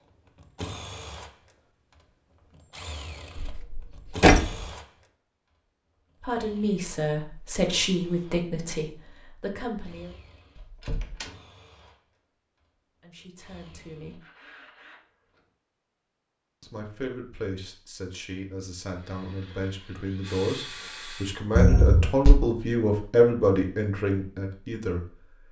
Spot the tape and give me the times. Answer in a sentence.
The tape can't be heard in this clip.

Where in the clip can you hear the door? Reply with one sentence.
You can hear the door from 3.4 to 4.5 s, from 9.9 to 11.3 s and from 21.6 to 22.4 s.